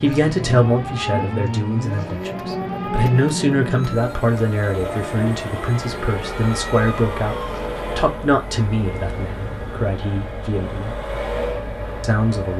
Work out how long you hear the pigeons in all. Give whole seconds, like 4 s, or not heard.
not heard.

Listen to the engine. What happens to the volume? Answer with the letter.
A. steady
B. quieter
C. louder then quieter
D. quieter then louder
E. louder
A.